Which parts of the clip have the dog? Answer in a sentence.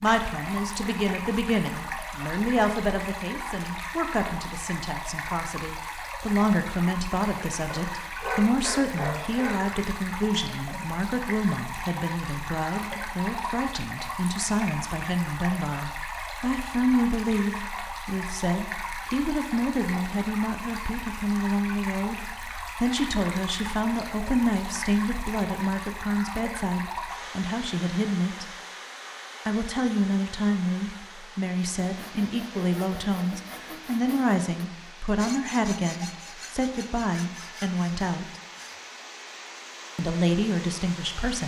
The dog can be heard from 7.7 to 9.6 s.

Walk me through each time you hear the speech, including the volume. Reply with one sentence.
You can hear the speech from 0.0 to 28.5 s, at a steady volume; from 29.4 to 38.4 s, at a steady volume; and briefly from 40.0 to 41.4 s.